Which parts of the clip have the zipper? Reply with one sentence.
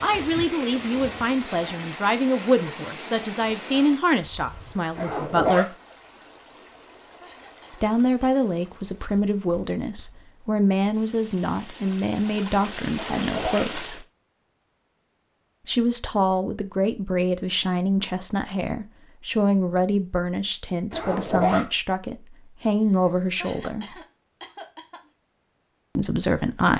You can hear the zipper from 5.0 to 5.7 s, from 12.9 to 13.7 s and from 20.9 to 21.6 s.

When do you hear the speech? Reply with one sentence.
You can hear the speech from 0.0 to 5.8 s, from 7.8 to 14.1 s, from 15.7 to 24.0 s and from 25.9 to 26.7 s.